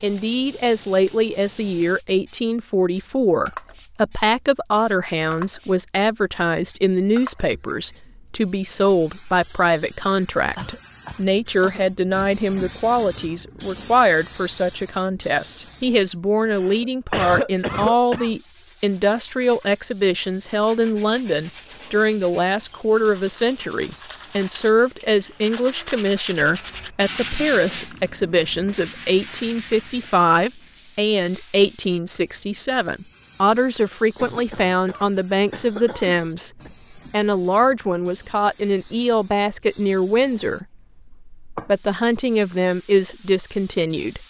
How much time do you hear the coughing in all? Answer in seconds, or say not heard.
6 s.